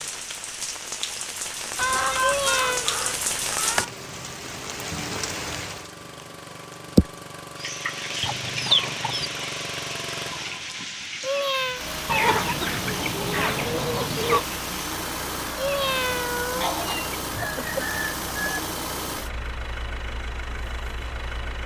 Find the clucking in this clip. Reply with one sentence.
The clucking can be heard from 1.8 to 3.9 s, from 8.2 to 9.3 s, from 12.1 to 14.4 s and from 16.6 to 18.6 s.